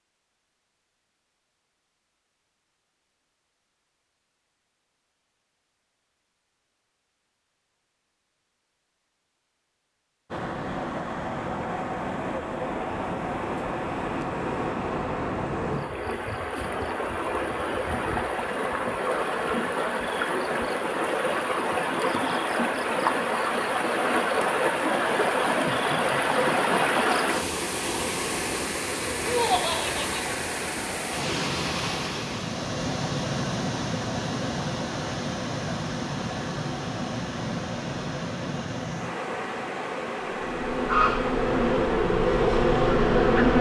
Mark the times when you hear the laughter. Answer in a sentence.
You can hear the laughter from 29.2 to 30.4 s.